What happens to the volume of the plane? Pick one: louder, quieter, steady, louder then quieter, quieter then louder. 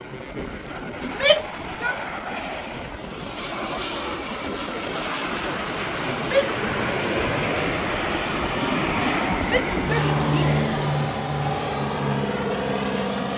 louder.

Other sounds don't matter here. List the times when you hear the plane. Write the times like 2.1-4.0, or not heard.
0.0-13.3.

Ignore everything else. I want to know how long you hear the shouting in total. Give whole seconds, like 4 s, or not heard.
3 s.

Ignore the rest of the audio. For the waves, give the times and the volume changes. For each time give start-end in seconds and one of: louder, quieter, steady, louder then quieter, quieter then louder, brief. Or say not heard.
not heard.